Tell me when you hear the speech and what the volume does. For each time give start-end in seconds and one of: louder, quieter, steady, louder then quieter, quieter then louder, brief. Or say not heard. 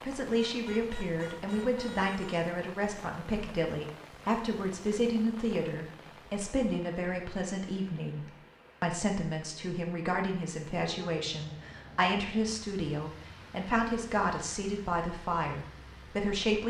0.0-16.6 steady.